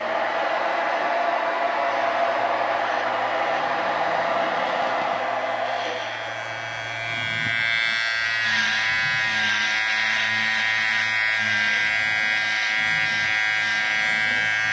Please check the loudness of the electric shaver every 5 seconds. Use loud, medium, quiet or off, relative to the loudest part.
quiet, loud, loud.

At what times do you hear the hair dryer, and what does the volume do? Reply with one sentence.
The hair dryer can be heard from 0.0 to 14.6 s, getting quieter.